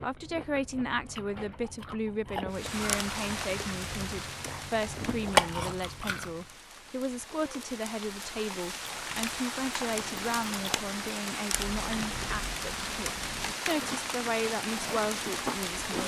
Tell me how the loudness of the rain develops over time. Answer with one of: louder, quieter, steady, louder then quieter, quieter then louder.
quieter then louder.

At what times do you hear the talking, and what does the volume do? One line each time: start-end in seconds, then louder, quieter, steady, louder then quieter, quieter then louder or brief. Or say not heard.
0.0-16.0 steady.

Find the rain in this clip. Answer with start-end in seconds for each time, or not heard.
2.5-16.0.